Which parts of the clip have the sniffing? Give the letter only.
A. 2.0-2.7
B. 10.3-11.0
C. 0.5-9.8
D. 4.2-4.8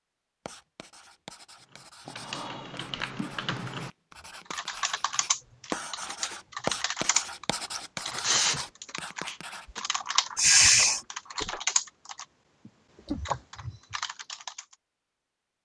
B.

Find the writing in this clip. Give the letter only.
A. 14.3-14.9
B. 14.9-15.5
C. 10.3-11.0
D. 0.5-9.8
D.